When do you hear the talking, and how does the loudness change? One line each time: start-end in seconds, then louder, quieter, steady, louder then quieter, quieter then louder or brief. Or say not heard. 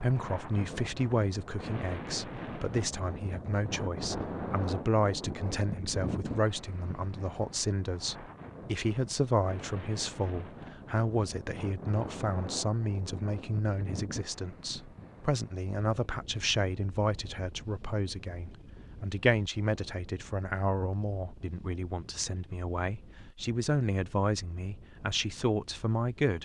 0.0-26.3 steady.